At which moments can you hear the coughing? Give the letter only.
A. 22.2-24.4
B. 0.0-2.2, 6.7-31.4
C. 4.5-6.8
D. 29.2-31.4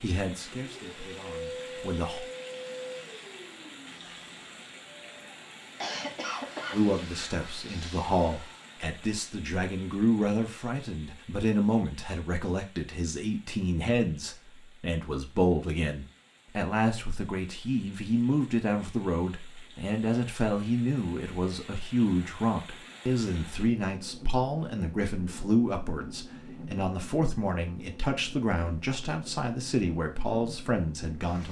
C.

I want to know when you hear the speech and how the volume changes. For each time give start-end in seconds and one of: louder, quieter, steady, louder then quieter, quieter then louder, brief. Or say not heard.
0.0-2.2 brief
6.7-31.4 steady.